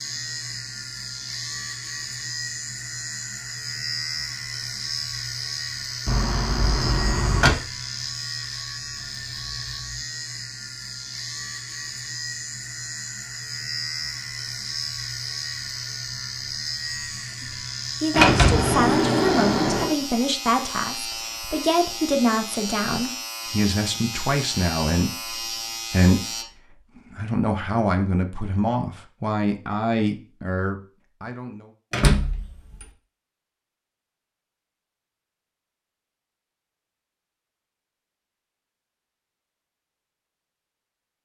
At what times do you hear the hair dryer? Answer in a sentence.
You can't hear the hair dryer here.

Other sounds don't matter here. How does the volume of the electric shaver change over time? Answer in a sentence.
The loudness of the electric shaver stays about the same.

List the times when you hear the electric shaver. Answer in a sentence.
You can hear the electric shaver from 0.0 to 26.4 s.